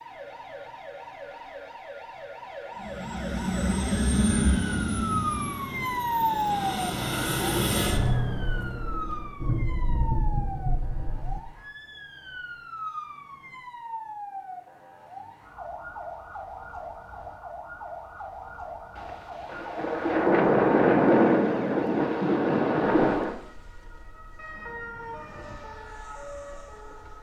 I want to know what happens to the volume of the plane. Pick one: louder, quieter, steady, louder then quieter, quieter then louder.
quieter then louder.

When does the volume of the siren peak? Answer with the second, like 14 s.
6 s.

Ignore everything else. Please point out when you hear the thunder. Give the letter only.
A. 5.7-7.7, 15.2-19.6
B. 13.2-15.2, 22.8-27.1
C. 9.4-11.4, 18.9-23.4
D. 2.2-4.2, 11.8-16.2
C.